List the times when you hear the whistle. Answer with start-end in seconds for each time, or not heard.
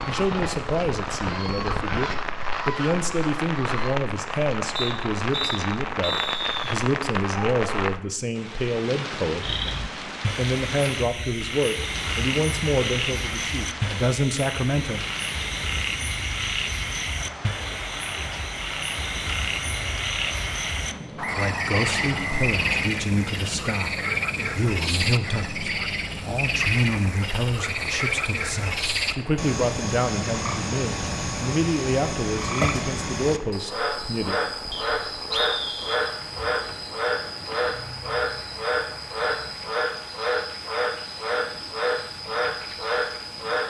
4.8-6.8, 21.1-22.9, 34.7-36.0.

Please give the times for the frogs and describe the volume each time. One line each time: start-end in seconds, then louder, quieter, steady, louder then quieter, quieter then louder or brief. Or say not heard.
9.4-43.6 steady.